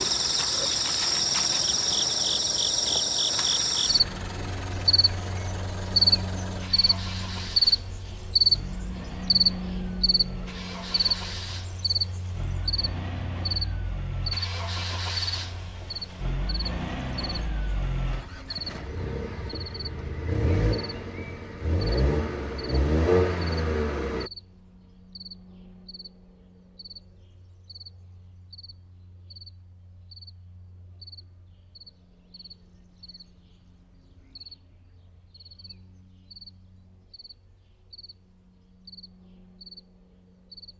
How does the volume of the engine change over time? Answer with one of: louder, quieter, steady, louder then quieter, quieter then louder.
louder.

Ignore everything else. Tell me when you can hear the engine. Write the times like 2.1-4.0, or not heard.
0.0-24.3.